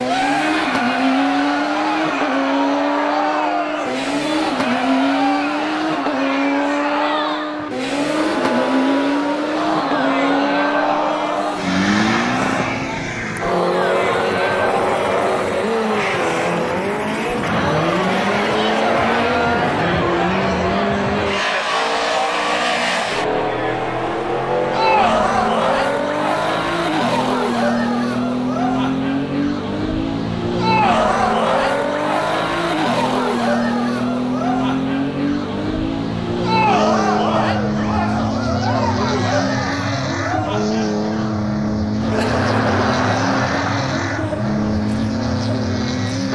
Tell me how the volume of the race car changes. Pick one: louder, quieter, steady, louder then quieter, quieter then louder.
steady.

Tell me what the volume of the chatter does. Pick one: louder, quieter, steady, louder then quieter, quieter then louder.
steady.